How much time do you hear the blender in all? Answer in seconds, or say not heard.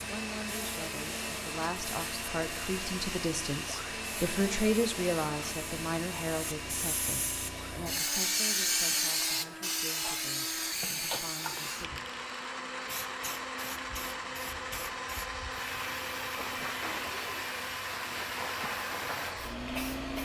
20 s.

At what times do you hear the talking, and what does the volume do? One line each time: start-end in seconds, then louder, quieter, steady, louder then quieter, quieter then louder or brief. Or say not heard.
0.0-12.1 louder then quieter.